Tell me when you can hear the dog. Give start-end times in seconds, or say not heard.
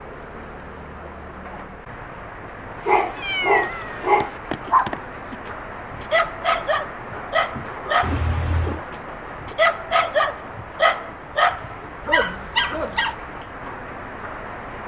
2.9-13.2.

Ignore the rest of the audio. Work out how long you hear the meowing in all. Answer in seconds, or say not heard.
3 s.